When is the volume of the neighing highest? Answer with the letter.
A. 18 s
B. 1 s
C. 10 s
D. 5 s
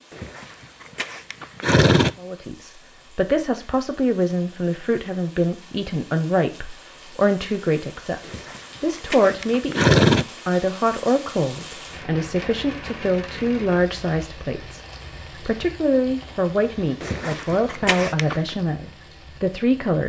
C.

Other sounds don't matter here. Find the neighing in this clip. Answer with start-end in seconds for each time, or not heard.
0.1-2.1, 8.2-10.2, 17.0-18.6.